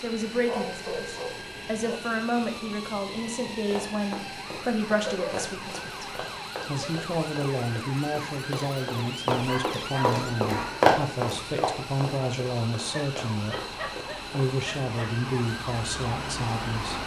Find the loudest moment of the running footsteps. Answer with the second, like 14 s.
11 s.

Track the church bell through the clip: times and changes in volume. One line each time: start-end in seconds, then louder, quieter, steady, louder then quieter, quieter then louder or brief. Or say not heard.
not heard.